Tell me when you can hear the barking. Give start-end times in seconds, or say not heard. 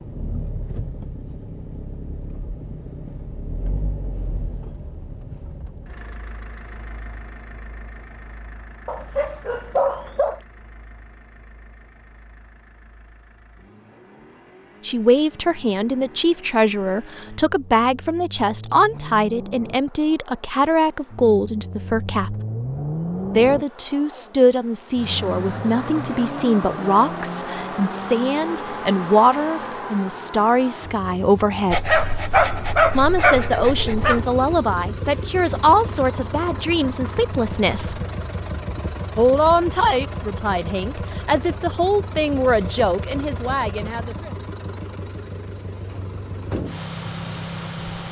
8.8-10.4, 31.7-34.2.